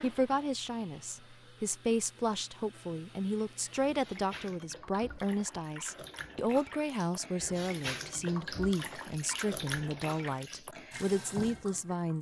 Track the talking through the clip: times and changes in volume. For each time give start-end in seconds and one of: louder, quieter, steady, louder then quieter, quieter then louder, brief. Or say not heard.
0.0-12.1 steady.